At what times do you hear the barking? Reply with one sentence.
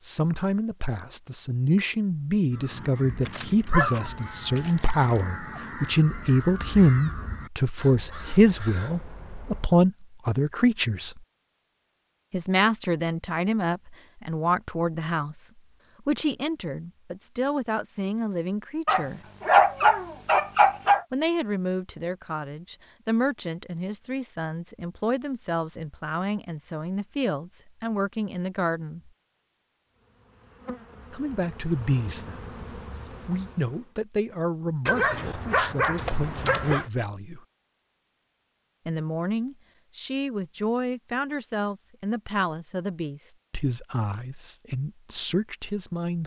You can hear the barking from 3.2 to 5.6 s, from 18.9 to 21.1 s and from 34.9 to 36.9 s.